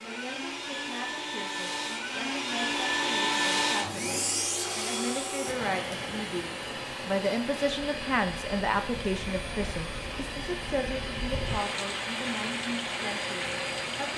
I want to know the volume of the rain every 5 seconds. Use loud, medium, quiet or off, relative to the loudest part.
off, medium, loud.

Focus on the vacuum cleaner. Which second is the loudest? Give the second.
3 s.